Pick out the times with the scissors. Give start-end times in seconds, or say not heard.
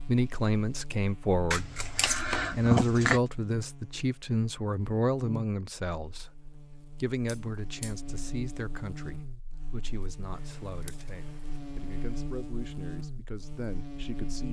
1.5-3.2, 7.2-8.1, 10.3-12.3.